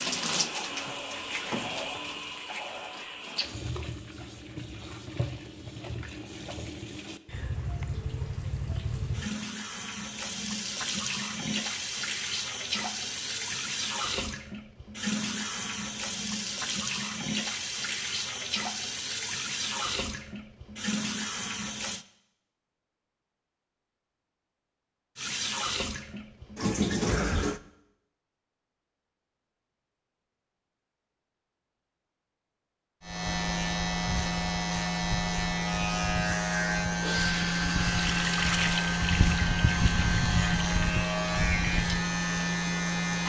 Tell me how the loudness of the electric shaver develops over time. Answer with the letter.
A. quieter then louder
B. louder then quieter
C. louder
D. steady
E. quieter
D.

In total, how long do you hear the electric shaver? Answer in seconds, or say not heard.
10 s.